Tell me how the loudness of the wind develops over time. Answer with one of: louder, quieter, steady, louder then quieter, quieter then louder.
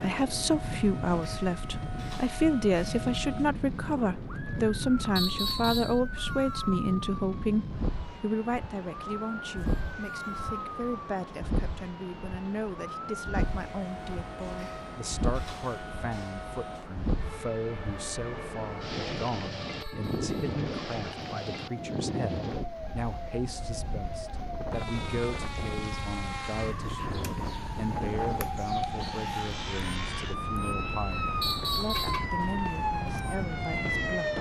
steady.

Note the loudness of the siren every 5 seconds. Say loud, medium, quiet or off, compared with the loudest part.
medium, medium, medium, medium, medium, loud, loud.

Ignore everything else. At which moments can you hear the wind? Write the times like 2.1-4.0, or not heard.
0.0-34.3.